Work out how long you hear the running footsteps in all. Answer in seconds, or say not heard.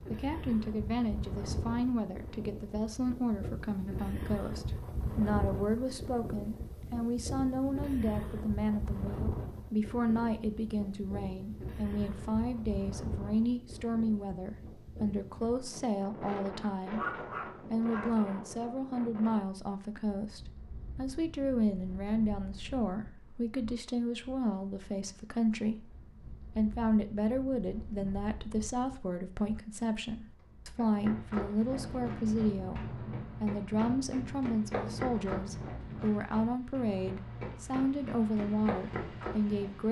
9 s.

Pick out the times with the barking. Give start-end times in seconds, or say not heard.
16.6-18.2.